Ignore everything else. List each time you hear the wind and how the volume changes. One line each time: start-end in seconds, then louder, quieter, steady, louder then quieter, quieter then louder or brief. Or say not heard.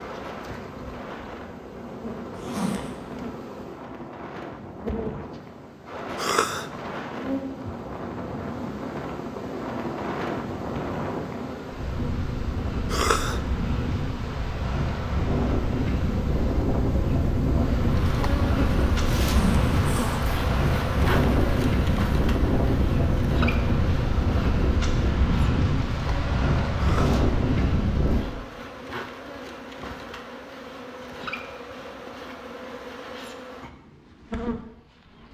0.0-28.2 louder.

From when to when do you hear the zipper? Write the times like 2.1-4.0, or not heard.
2.4-3.0, 19.1-20.2.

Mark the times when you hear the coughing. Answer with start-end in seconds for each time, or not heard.
6.2-6.7, 12.8-13.4, 26.8-27.2.